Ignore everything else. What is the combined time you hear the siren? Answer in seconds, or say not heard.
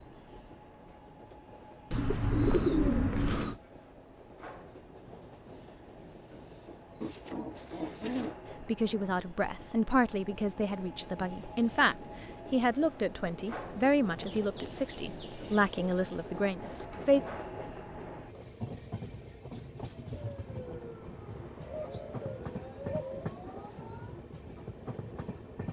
4 s.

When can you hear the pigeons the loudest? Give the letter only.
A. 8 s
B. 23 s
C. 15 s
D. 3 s
D.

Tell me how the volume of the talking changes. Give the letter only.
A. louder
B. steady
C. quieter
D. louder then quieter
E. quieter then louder
B.